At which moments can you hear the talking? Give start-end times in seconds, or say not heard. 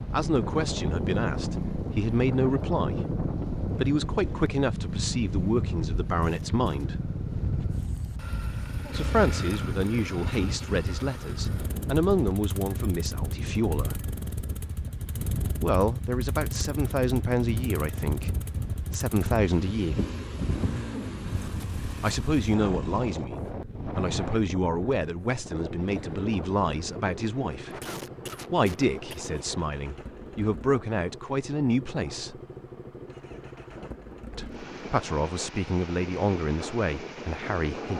0.1-7.0, 8.9-14.0, 15.6-19.9, 22.0-27.8, 28.5-32.4, 34.3-37.9.